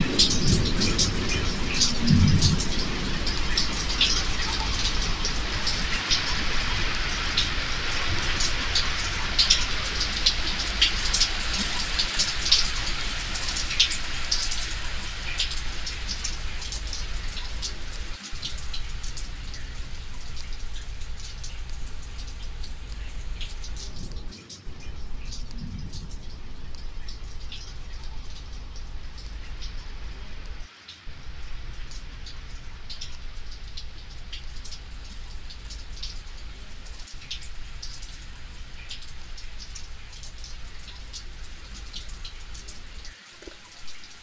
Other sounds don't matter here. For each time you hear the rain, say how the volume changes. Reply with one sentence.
The rain can be heard from 0.0 to 44.1 s, getting quieter.